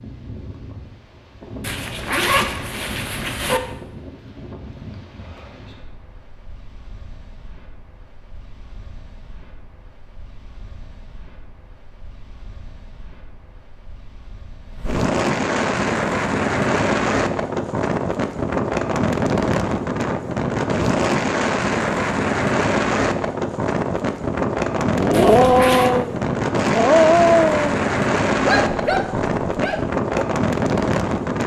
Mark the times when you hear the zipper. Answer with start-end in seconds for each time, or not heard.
1.6-3.6, 25.1-25.9.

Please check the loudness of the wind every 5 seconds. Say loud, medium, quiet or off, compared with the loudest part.
quiet, quiet, quiet, loud, loud, loud, loud.